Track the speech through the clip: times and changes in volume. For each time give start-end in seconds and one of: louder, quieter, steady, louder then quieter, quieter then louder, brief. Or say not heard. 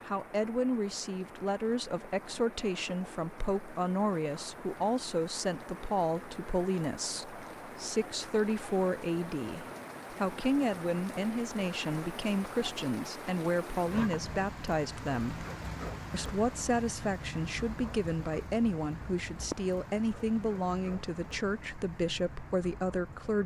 0.1-15.4 steady
16.1-23.4 steady.